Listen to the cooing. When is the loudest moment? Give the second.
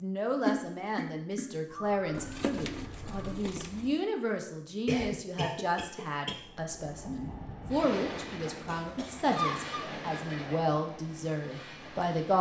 3 s.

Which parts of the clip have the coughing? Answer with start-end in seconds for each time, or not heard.
0.5-1.5, 4.8-6.4, 8.7-10.7.